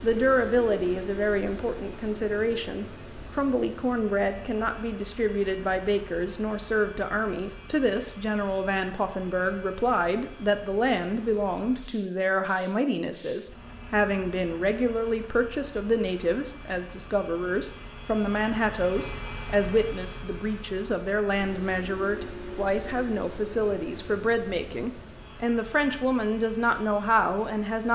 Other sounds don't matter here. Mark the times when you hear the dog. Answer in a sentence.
You can't hear the dog here.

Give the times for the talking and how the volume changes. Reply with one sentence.
You can hear the talking from 0.0 to 27.9 s, at a steady volume.